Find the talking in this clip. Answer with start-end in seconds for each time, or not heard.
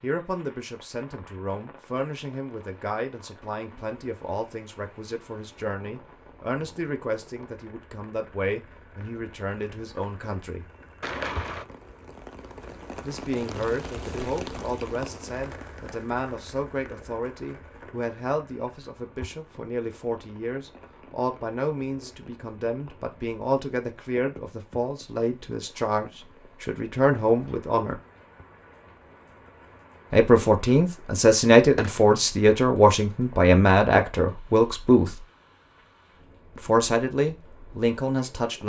0.0-10.7, 13.0-27.9, 30.1-35.1, 36.5-38.6.